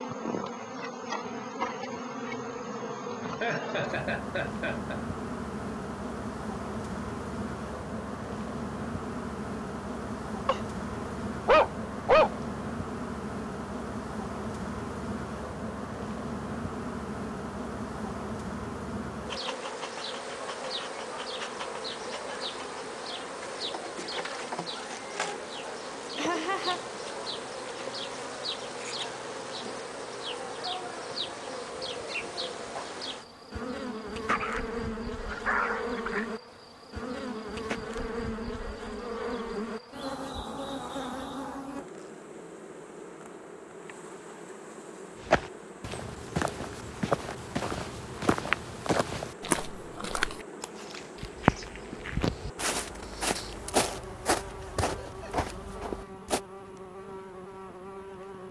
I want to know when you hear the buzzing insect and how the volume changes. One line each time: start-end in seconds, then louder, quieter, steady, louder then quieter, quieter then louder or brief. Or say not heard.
0.0-58.4 quieter.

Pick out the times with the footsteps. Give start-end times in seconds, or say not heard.
45.1-56.4.